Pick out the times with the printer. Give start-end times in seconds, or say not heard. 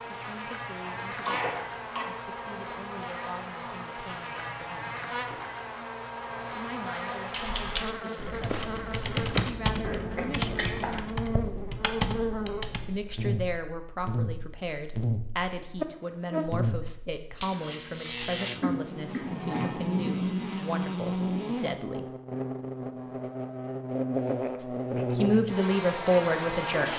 not heard.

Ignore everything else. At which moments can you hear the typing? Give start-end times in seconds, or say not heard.
7.3-12.8.